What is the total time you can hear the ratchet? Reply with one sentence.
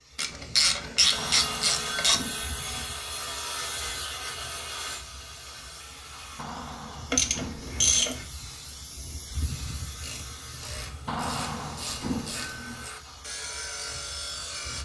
The ratchet can be heard for 6 seconds in total.